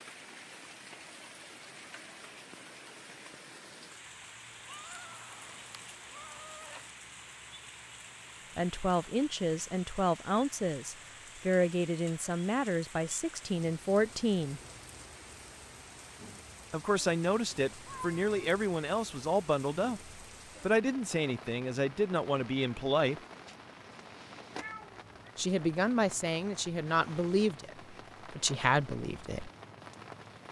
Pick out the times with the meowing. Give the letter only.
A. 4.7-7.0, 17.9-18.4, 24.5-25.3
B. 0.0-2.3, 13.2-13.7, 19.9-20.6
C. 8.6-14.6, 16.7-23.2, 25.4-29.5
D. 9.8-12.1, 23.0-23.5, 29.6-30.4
A.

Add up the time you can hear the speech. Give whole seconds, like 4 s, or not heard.
17 s.